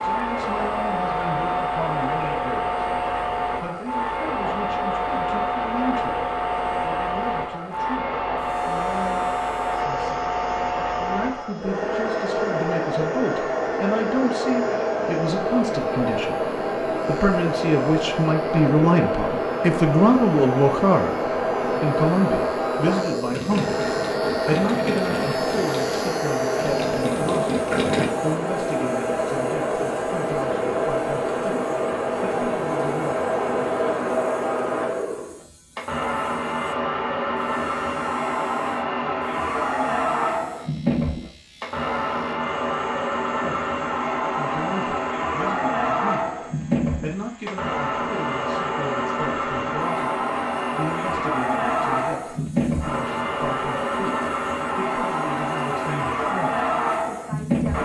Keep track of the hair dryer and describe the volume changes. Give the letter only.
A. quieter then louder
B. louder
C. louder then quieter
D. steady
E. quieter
D.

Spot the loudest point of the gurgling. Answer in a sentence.
The loudest moment of the gurgling is at 28 seconds.